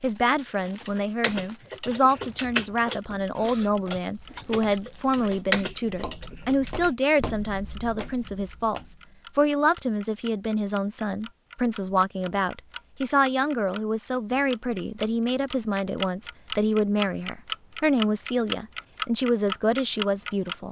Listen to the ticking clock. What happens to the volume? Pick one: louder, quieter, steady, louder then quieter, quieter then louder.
louder.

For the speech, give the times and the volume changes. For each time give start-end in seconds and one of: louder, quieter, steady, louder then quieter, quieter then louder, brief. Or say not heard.
0.0-20.6 steady.